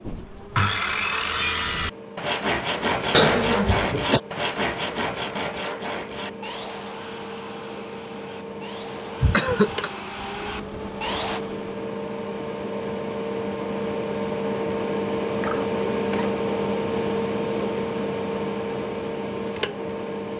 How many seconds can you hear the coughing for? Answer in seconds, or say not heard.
3 s.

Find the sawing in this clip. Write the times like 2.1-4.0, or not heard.
0.0-11.4.